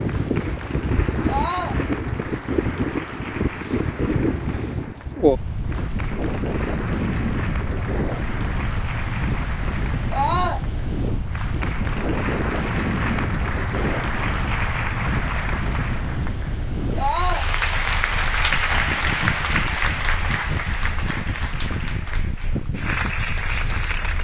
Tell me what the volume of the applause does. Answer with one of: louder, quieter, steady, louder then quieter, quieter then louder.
louder.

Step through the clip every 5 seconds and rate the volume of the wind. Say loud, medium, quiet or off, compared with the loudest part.
loud, loud, loud, medium, medium.